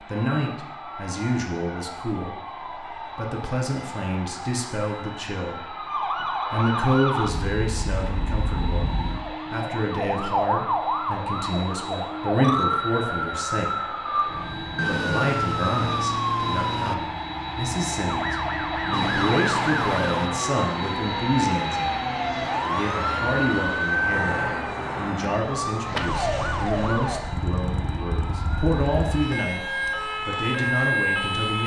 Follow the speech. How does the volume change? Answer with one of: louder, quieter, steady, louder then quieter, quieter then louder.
steady.